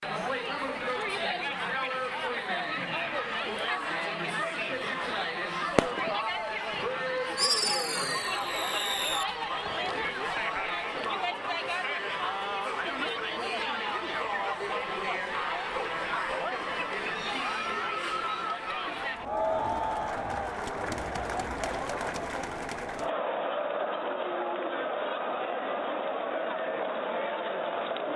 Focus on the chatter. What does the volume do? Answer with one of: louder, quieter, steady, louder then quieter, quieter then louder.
steady.